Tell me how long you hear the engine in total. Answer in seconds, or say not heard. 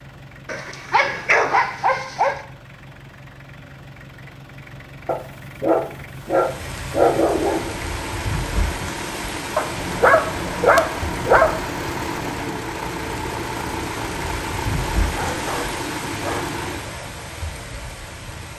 17 s.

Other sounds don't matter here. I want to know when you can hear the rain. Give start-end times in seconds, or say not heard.
6.1-18.5.